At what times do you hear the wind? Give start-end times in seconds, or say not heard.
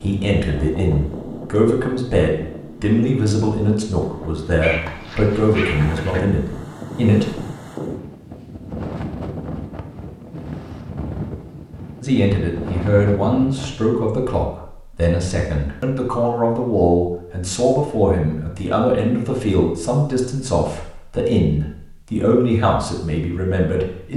0.0-13.8.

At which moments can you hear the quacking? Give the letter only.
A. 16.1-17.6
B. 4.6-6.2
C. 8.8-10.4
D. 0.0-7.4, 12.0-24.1
B.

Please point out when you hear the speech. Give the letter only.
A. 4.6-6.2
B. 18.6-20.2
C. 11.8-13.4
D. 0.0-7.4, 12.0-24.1
D.